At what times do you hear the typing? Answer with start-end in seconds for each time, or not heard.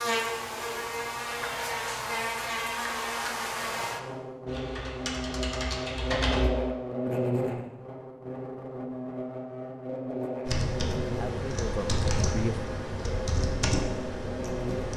4.5-6.5, 10.4-14.9.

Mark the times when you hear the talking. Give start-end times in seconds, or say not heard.
11.2-12.6.